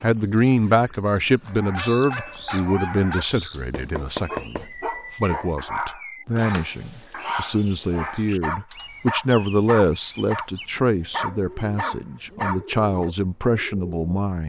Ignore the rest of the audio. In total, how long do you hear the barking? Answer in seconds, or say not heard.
12 s.